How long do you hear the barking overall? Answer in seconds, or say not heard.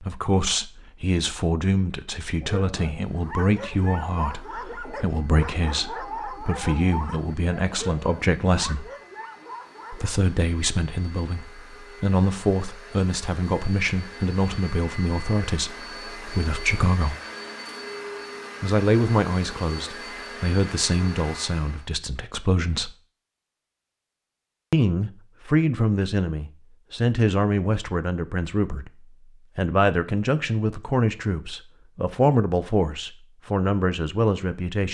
8 s.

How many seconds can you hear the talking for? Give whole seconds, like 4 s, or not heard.
31 s.